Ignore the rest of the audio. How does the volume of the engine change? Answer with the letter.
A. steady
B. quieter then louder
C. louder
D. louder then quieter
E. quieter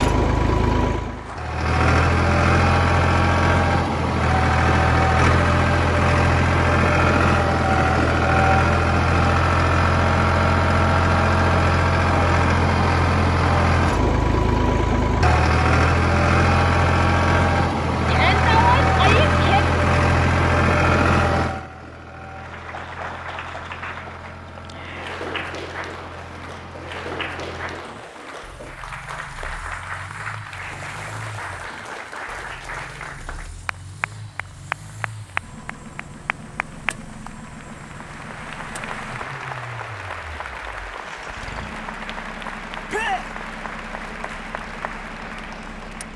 E.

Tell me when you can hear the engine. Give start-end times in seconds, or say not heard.
0.0-46.1.